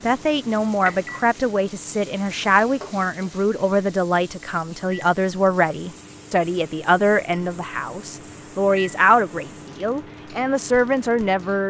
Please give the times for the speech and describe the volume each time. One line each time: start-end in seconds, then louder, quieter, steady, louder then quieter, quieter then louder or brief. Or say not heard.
0.0-11.6 steady.